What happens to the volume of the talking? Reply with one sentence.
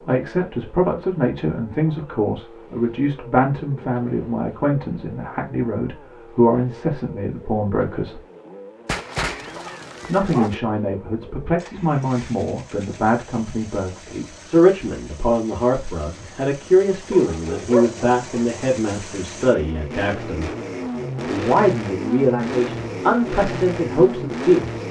The volume of the talking stays about the same.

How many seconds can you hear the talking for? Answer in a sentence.
You can hear the talking for 22 seconds altogether.